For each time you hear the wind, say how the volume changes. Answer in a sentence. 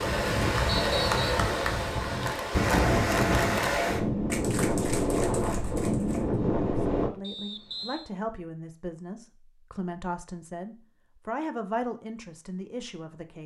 The wind can be heard from 0.0 to 7.1 s, at a steady volume.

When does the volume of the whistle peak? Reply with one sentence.
The volume of the whistle peaks at 1 second.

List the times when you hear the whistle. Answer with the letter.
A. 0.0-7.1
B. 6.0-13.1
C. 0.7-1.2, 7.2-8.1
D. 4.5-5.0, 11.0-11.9
C.